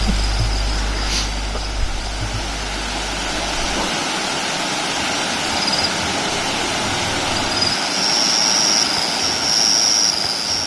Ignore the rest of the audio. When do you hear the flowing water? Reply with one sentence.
The flowing water can be heard from 0.0 to 10.6 s.